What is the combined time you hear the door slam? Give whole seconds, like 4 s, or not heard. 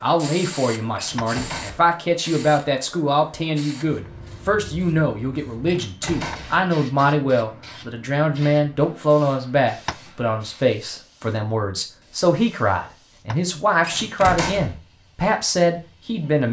3 s.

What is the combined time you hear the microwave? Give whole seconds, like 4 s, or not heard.
not heard.